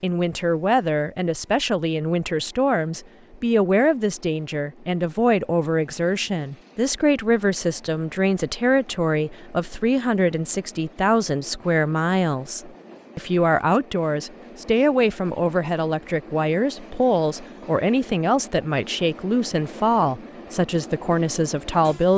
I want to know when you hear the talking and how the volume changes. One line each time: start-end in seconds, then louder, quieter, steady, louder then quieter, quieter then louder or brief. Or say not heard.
0.0-22.1 steady.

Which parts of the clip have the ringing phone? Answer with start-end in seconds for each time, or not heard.
not heard.